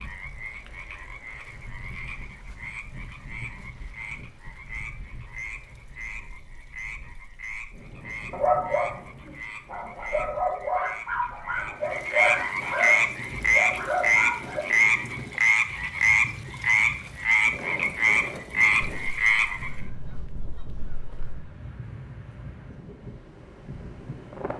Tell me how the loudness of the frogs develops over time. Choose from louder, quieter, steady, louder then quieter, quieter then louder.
louder.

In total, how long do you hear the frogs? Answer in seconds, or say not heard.
20 s.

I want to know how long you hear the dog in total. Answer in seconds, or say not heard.
6 s.